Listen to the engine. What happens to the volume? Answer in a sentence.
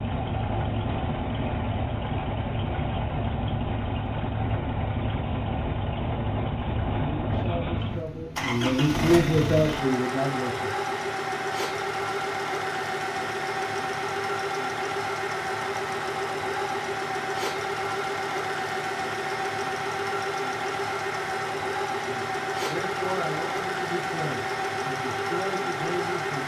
The loudness of the engine stays about the same.